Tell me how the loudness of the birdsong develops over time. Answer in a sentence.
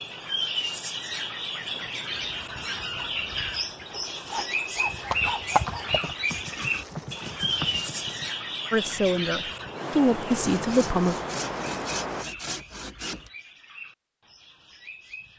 The volume of the birdsong goes down.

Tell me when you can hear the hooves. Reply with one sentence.
You can hear the hooves from 4.8 to 8.3 s.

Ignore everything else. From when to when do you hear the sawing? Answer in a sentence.
The sawing can be heard from 3.9 to 5.9 s and from 10.3 to 13.3 s.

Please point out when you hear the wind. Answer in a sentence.
You can hear the wind from 0.0 to 12.2 s.